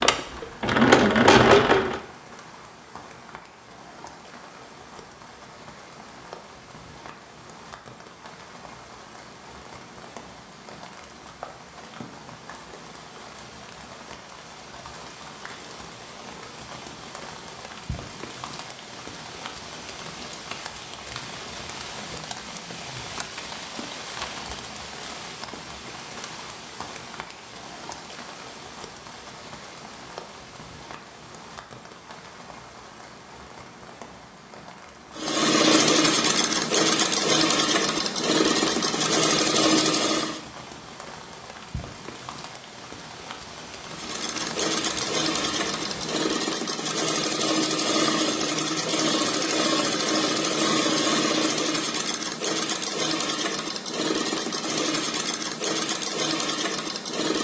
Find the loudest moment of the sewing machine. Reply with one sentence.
The volume of the sewing machine peaks at 1 second.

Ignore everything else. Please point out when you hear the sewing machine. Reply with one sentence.
The sewing machine can be heard from 0.0 to 2.0 s, from 35.1 to 40.4 s and from 43.9 to 57.3 s.